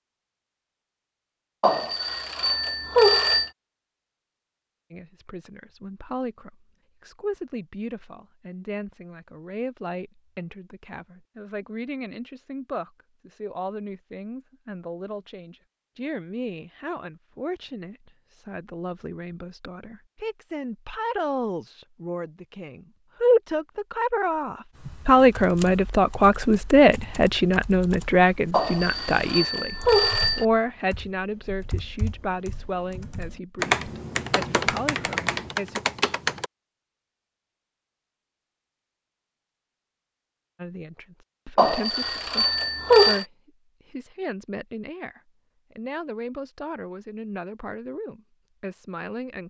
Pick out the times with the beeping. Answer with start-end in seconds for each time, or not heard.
1.6-3.5, 28.5-30.4, 41.5-43.2.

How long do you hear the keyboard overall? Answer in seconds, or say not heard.
12 s.